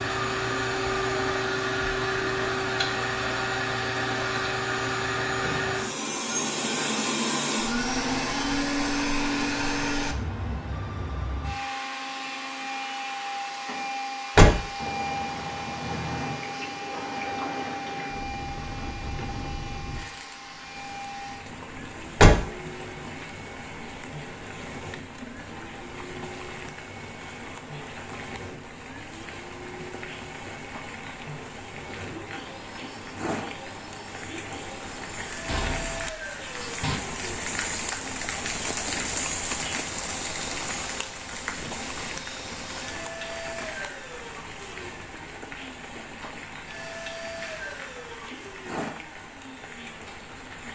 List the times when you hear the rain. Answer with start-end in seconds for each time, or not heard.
14.8-50.7.